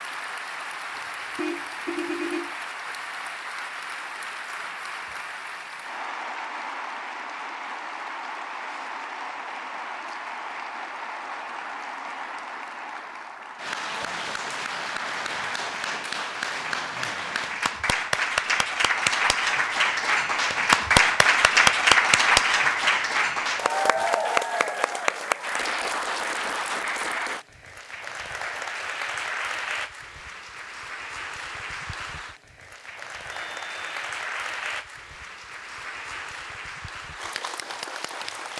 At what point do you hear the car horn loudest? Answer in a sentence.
The volume of the car horn peaks at 2 seconds.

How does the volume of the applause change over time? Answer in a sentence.
The volume of the applause goes up, then down.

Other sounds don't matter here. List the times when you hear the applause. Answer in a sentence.
The applause can be heard from 0.0 to 38.5 s.